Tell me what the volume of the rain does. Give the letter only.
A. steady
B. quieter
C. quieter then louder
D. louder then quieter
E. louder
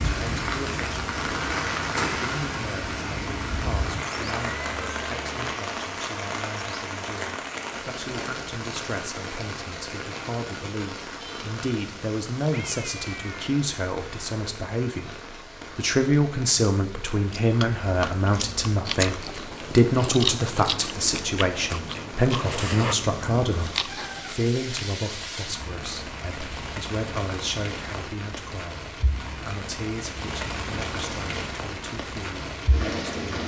C.